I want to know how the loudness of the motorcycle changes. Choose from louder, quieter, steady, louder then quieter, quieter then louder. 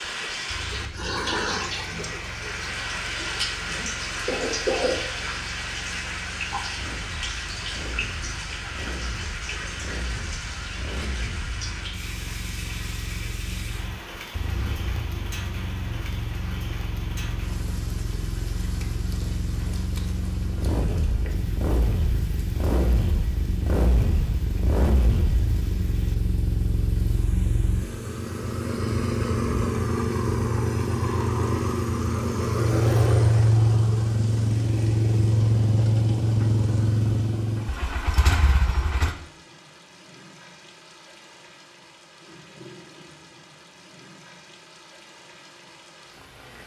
louder.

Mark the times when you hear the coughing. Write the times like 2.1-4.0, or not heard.
3.6-5.0.